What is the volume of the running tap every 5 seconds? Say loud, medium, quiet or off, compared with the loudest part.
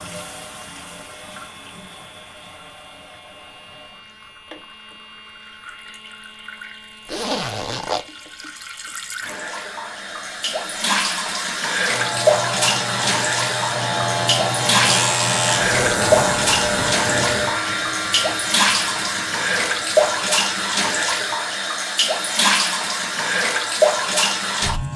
quiet, quiet, loud, loud, loud.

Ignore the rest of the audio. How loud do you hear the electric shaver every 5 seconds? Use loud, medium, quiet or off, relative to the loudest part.
quiet, quiet, loud, loud, quiet.